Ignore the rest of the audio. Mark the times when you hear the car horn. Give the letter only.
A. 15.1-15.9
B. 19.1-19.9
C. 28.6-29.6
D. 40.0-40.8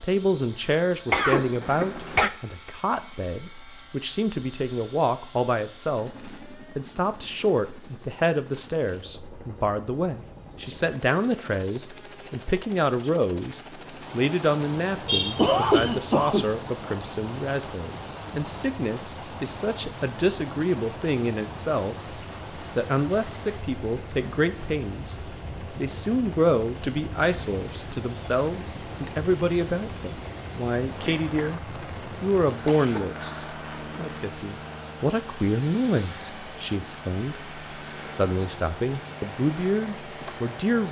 A.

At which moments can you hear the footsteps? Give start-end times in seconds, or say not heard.
not heard.